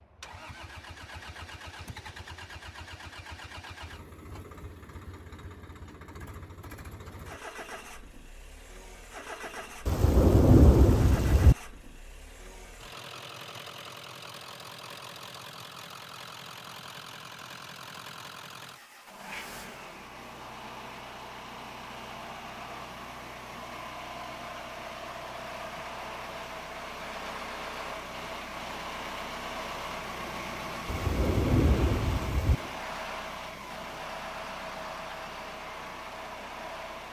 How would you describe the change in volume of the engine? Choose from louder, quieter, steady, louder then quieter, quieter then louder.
louder.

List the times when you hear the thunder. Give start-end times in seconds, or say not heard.
9.8-11.6, 30.9-32.5.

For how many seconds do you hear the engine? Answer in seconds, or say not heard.
37 s.